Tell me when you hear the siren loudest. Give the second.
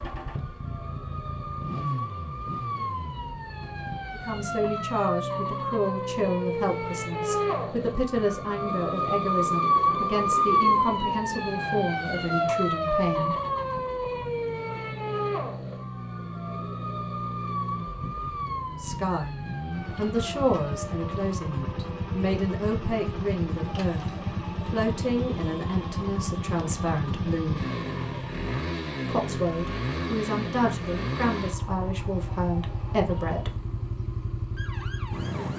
10 s.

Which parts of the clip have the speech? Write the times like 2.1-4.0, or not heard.
4.1-13.3, 18.6-27.6, 29.1-33.5.